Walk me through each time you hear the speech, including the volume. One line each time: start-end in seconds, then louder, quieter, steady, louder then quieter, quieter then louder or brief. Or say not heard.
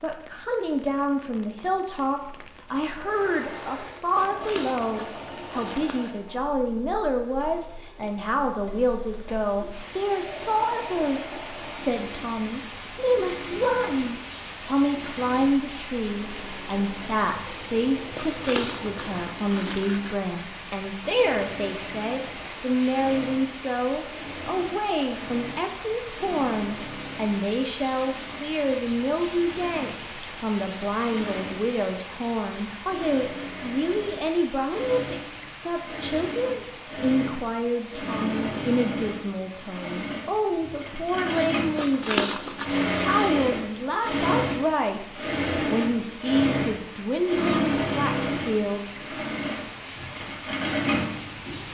0.0-48.9 steady.